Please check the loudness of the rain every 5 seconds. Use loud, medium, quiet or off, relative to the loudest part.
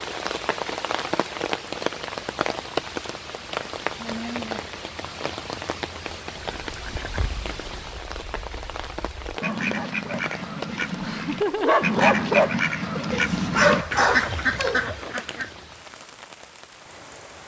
loud, medium, medium, quiet.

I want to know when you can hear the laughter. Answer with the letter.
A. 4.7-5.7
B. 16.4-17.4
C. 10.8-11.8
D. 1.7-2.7
C.